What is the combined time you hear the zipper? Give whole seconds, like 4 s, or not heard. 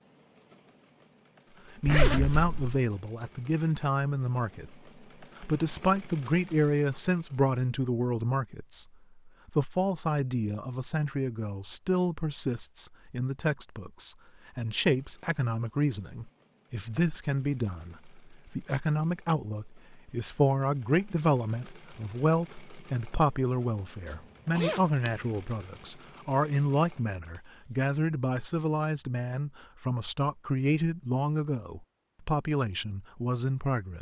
2 s.